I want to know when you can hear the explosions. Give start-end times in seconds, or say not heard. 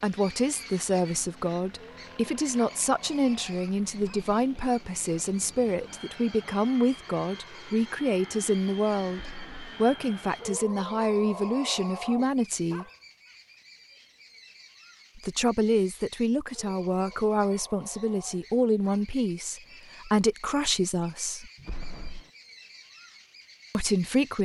9.1-9.7, 21.6-22.3.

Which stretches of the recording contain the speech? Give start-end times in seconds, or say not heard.
0.0-12.8, 15.2-21.5, 23.7-24.4.